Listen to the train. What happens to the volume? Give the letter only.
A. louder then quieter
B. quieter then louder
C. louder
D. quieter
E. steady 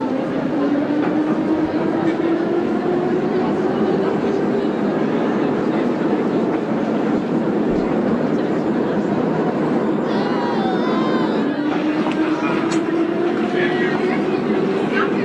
E.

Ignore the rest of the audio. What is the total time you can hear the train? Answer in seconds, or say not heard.
15 s.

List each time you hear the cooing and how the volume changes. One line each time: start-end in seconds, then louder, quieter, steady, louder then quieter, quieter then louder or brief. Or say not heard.
not heard.